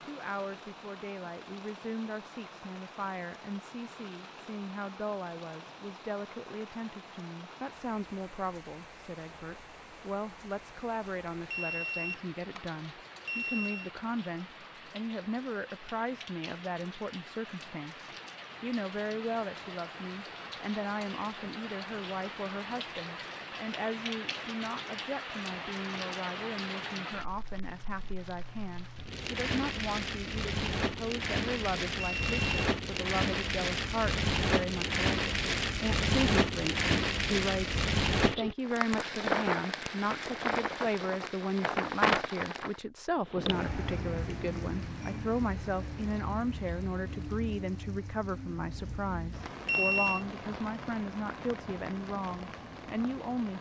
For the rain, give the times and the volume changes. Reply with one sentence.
The rain can be heard from 0.0 to 53.5 s, getting louder then quieter.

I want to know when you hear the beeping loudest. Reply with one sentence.
The volume of the beeping peaks at 50 seconds.